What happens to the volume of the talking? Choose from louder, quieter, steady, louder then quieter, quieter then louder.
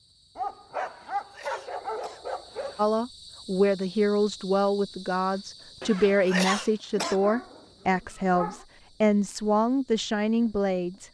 steady.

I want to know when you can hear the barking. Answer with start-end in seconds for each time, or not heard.
0.3-2.8, 7.0-8.7.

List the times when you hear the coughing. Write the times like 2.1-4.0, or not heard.
0.8-2.9, 5.8-7.2.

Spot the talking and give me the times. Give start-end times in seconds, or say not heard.
2.8-11.0.